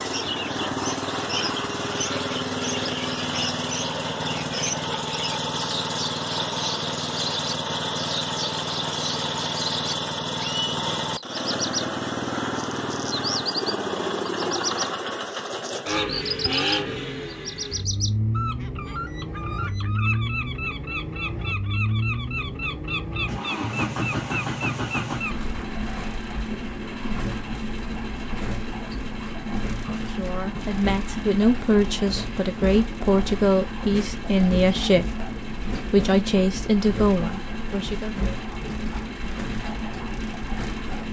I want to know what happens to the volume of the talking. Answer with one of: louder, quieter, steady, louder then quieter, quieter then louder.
steady.